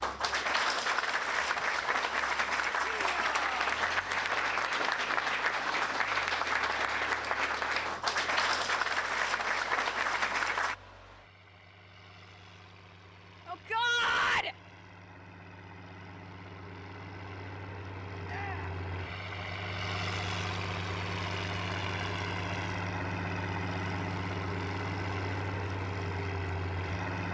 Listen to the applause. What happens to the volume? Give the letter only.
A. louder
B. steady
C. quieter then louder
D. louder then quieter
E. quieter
B.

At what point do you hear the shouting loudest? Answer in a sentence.
The volume of the shouting peaks at 14 seconds.